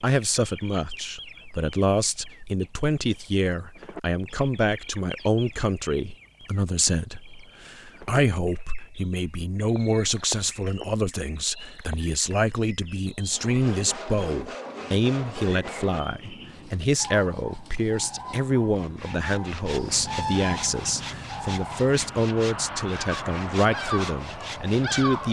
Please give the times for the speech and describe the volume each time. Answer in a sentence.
You can hear the speech from 0.0 to 25.2 s, at a steady volume.